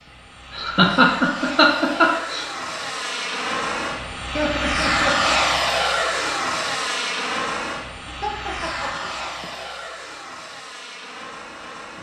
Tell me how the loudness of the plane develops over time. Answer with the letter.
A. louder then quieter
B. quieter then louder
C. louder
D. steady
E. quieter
A.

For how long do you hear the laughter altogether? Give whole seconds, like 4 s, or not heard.
5 s.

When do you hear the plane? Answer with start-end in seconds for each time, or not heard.
0.0-11.9.